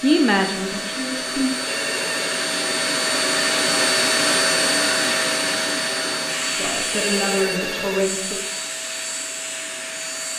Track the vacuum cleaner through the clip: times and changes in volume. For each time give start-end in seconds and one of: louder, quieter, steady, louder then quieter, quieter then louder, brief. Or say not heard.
0.0-10.3 louder then quieter.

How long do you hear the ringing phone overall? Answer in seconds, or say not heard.
2 s.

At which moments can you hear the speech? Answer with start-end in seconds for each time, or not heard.
0.0-1.6, 6.5-8.4.